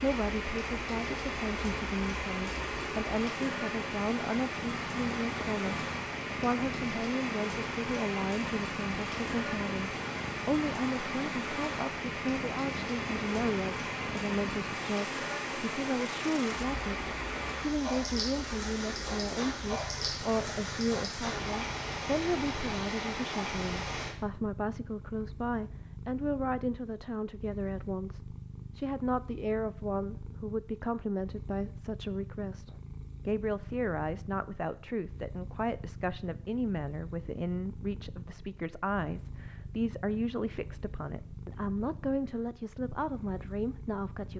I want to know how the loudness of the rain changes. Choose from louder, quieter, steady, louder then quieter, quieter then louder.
steady.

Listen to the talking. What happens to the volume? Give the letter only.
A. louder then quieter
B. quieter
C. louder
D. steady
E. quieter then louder
D.